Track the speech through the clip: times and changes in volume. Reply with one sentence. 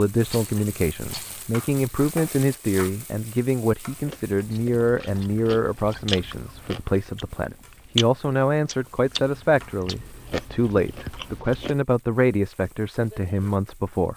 The speech can be heard from 0.0 to 14.1 s, at a steady volume.